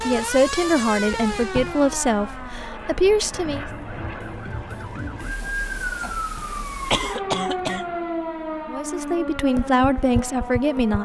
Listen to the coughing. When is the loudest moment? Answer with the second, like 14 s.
7 s.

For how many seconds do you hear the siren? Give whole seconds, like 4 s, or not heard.
11 s.